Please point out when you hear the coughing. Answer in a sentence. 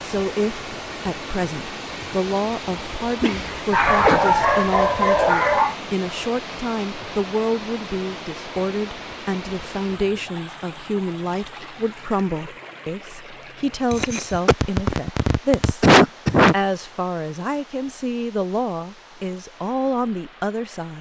You can hear the coughing from 3.2 to 4.2 s and from 13.9 to 16.6 s.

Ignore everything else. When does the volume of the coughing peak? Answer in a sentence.
The volume of the coughing peaks at 16 seconds.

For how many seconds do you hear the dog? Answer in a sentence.
The dog can be heard for 2 seconds in total.